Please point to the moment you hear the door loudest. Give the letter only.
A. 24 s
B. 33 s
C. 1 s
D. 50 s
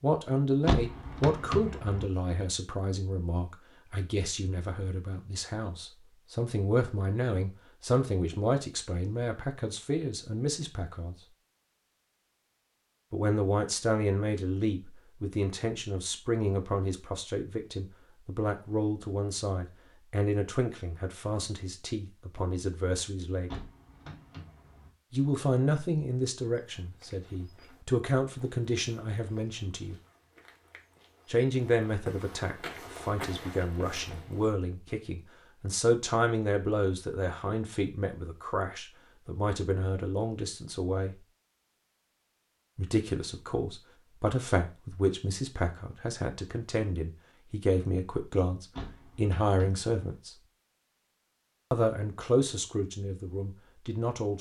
C.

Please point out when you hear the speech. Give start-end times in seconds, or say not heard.
0.0-11.2, 13.1-23.6, 25.1-29.9, 31.2-41.2, 42.8-50.4, 51.7-54.3.